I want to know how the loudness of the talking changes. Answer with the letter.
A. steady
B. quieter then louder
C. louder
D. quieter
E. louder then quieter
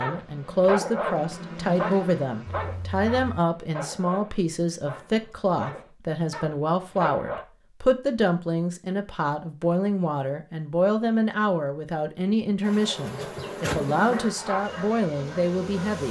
A.